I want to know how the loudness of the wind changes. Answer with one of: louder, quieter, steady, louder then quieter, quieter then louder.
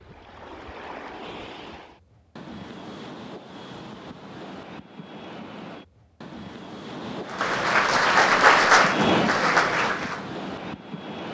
louder.